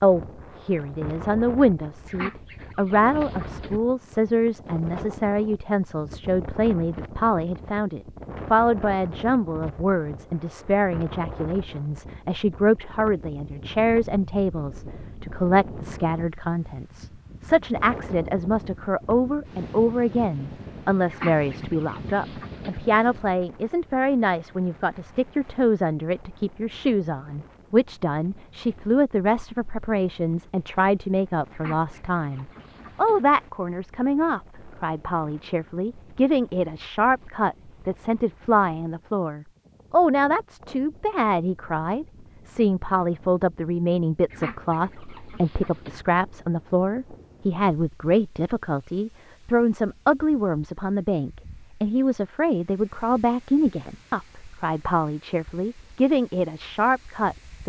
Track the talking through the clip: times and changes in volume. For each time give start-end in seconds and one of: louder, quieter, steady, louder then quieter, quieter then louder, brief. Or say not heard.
0.0-57.6 steady.